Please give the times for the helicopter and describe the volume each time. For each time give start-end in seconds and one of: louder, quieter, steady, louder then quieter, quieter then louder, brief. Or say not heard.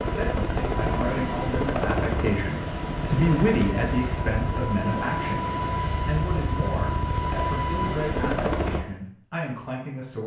0.0-8.8 steady.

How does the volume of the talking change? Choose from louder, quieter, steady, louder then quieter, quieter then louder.
louder then quieter.